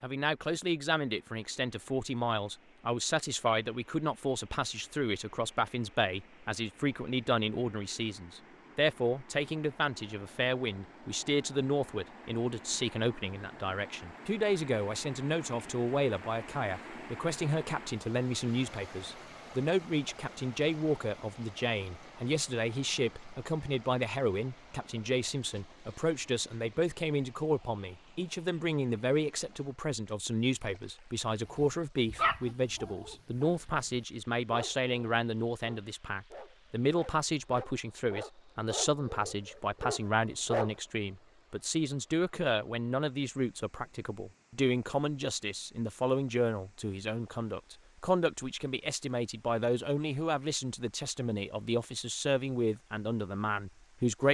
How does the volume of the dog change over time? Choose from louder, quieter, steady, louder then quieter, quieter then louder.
quieter then louder.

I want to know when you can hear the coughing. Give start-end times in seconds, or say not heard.
not heard.